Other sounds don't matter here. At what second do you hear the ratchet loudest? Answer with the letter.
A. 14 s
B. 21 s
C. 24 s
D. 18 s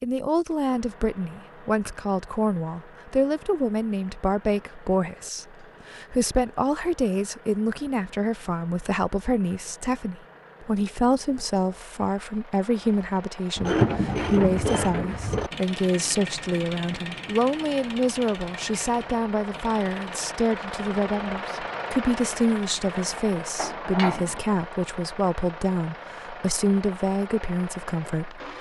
A.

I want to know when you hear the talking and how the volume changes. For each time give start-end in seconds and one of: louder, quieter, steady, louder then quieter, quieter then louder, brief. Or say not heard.
0.0-28.4 steady.